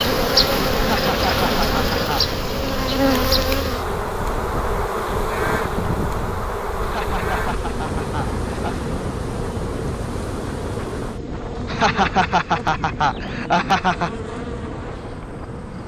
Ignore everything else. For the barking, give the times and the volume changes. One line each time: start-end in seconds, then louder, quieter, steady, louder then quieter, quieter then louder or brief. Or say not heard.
not heard.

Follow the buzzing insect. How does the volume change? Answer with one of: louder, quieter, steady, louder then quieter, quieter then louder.
quieter.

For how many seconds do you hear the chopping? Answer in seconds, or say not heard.
not heard.